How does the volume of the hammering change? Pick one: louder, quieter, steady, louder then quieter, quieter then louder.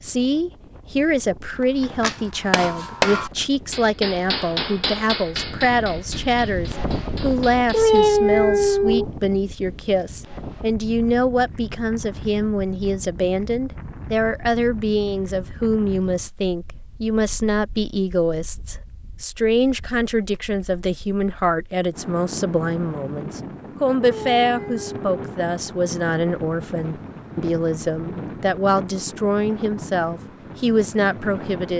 quieter.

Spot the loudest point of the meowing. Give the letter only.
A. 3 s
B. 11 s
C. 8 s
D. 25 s
C.